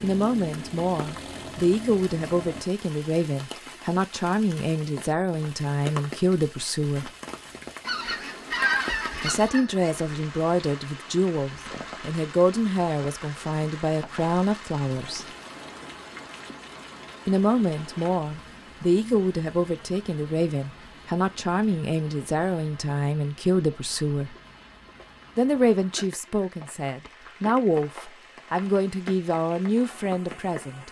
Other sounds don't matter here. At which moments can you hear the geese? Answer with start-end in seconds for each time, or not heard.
7.8-9.9.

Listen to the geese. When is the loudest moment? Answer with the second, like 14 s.
9 s.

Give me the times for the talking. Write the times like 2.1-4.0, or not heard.
0.0-7.1, 9.2-15.2, 17.2-24.4, 25.4-30.8.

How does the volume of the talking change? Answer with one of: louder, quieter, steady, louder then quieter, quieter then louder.
steady.